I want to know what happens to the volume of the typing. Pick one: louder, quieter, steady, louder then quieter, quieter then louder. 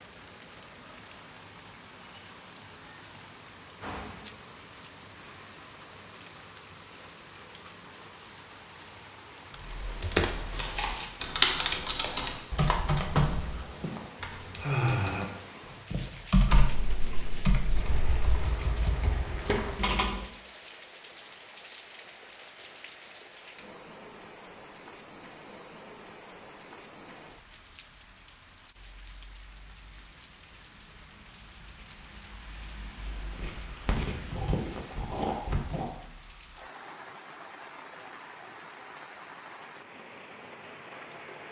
quieter.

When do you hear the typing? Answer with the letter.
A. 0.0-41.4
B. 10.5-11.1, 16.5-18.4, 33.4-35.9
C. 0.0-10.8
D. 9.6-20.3
D.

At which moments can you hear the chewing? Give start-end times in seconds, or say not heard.
10.5-11.1, 16.5-18.4, 33.4-35.9.